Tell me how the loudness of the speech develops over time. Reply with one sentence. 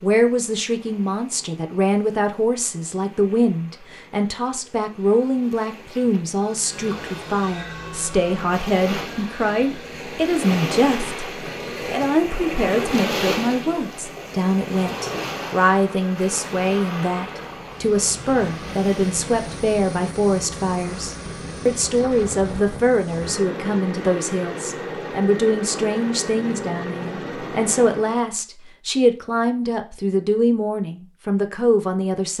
The loudness of the speech stays about the same.